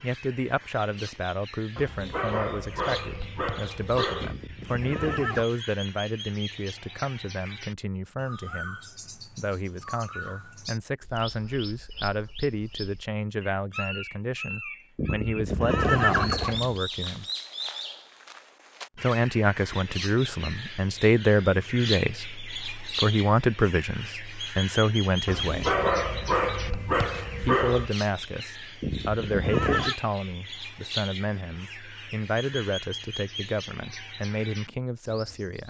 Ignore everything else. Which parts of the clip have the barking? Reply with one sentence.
You can hear the barking from 1.8 to 4.4 s and from 25.2 to 27.9 s.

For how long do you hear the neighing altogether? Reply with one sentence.
You can hear the neighing for 4 seconds altogether.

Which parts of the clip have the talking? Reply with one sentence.
The talking can be heard from 0.0 to 17.2 s, from 19.0 to 25.8 s and from 27.4 to 35.6 s.